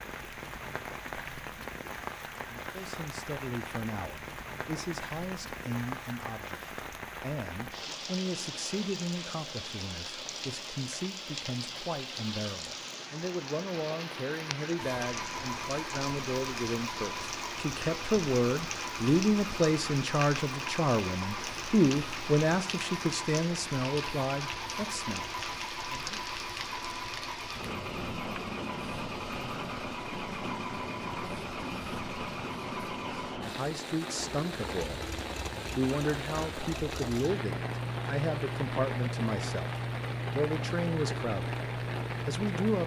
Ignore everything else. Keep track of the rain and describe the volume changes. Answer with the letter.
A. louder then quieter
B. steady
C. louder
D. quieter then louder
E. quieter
B.